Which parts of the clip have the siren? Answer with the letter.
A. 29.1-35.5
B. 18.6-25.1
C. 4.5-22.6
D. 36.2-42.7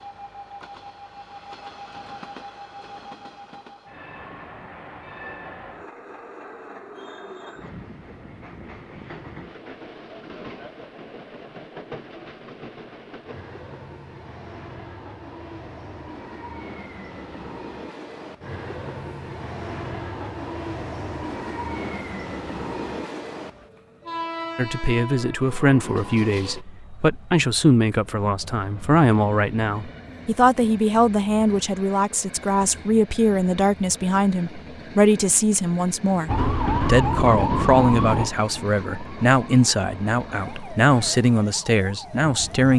D.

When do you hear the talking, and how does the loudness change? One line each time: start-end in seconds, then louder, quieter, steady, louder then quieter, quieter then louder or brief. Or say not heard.
24.6-42.7 steady.